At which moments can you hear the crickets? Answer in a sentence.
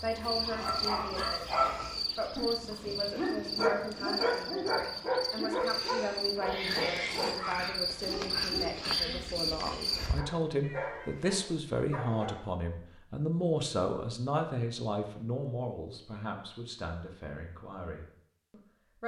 The crickets can be heard from 0.0 to 10.2 s.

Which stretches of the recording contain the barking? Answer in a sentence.
You can hear the barking from 0.5 to 12.4 s.